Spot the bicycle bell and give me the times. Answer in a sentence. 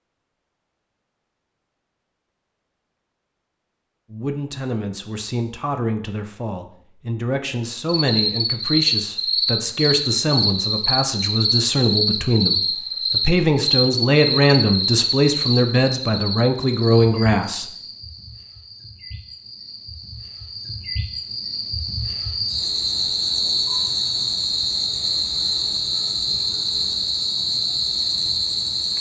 The bicycle bell can't be heard in this clip.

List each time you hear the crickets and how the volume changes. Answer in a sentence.
You can hear the crickets from 7.8 to 28.9 s, getting quieter then louder.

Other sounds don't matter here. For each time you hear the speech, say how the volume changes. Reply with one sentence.
You can hear the speech from 4.1 to 17.7 s, getting louder.